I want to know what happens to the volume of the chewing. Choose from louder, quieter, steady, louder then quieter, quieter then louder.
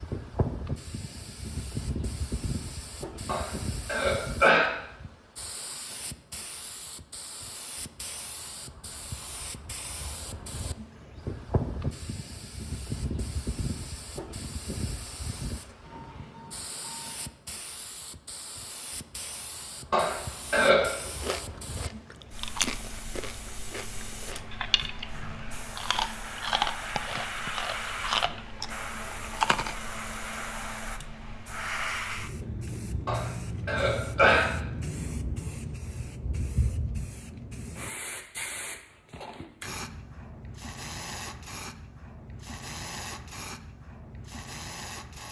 quieter then louder.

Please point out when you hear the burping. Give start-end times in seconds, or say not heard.
3.2-4.7, 19.9-20.9, 33.0-34.5.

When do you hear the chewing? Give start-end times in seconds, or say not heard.
21.1-29.8.